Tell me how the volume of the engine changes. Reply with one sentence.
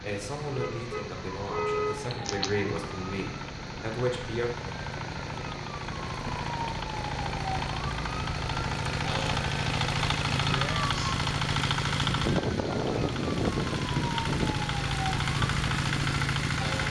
The volume of the engine goes up.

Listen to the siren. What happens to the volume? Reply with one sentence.
The volume of the siren stays about the same.